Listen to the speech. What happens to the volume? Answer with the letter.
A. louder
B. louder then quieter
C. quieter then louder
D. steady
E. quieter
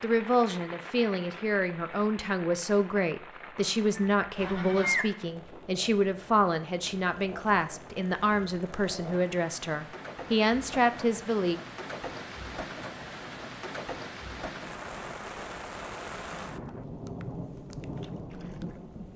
D.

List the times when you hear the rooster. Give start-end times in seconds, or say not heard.
4.0-5.0.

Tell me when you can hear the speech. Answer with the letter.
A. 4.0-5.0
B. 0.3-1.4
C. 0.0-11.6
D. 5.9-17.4
C.